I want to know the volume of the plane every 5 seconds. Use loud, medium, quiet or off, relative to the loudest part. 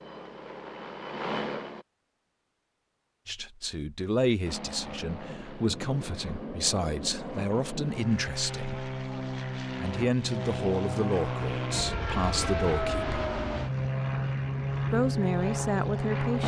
medium, medium, loud, loud.